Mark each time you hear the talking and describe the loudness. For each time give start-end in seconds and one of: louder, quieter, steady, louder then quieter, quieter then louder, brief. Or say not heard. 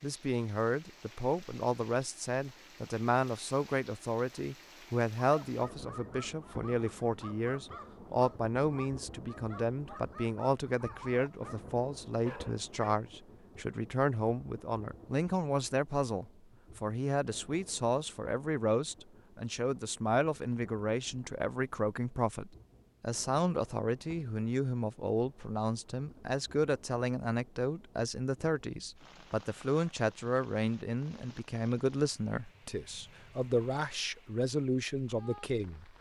0.0-35.9 steady.